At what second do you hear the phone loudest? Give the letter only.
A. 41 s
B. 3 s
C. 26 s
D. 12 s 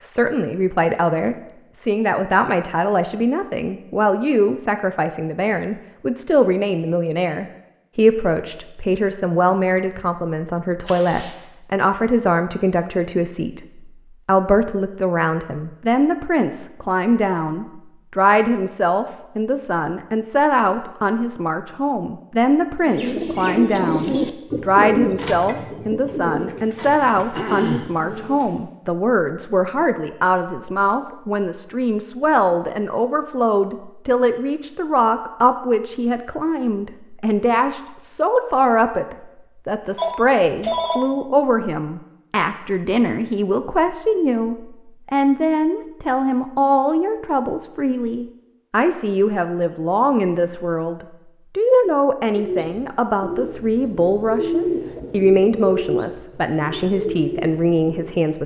A.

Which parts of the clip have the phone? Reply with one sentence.
You can hear the phone from 10.8 to 11.4 s, from 25.1 to 25.6 s and from 40.0 to 41.1 s.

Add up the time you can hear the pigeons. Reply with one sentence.
The pigeons can be heard for 12 seconds in total.